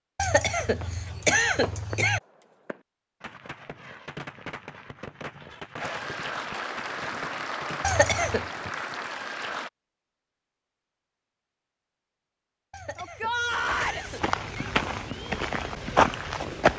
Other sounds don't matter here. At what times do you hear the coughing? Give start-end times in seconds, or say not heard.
0.1-2.2, 7.8-8.5, 12.7-14.8.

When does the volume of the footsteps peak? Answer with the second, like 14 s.
16 s.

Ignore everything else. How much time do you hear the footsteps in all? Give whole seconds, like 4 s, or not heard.
3 s.